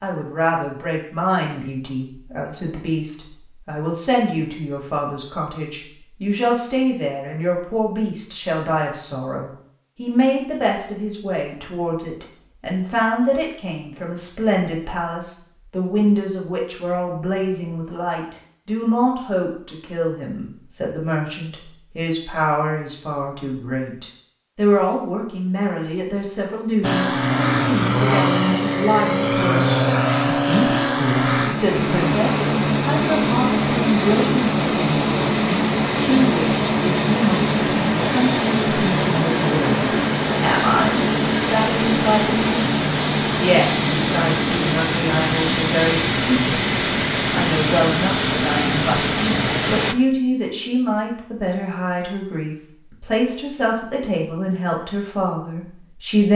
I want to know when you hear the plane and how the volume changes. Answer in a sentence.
The plane can be heard from 26.8 to 50.0 s, at a steady volume.